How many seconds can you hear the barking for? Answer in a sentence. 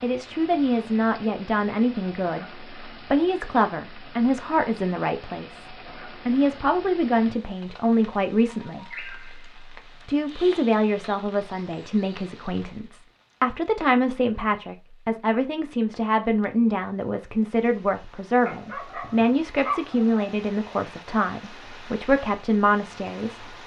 The barking can be heard for 2 seconds in total.